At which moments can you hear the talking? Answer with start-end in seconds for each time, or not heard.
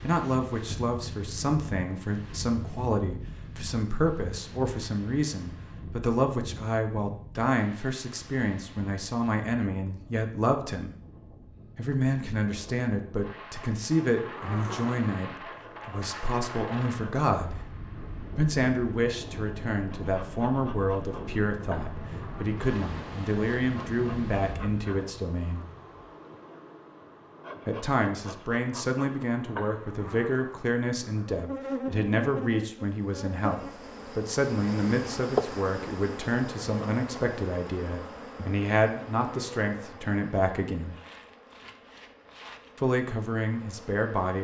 0.0-10.9, 11.8-17.6, 18.4-25.6, 27.6-41.0, 42.8-44.3.